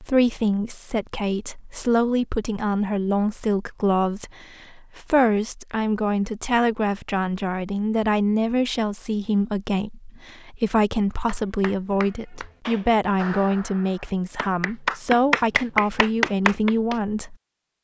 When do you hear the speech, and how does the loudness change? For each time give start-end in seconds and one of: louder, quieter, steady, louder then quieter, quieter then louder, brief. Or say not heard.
0.0-17.4 steady.